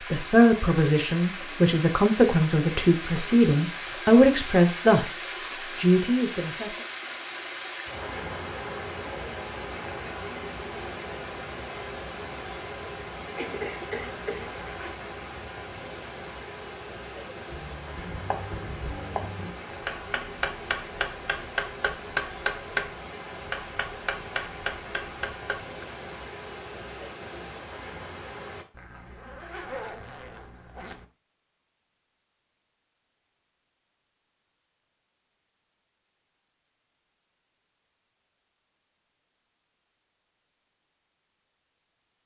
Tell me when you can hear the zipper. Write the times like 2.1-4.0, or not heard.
14.1-15.0, 28.7-31.1.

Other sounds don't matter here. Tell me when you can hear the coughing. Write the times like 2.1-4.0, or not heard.
13.3-14.6.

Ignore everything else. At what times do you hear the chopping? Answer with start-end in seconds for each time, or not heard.
17.3-25.6.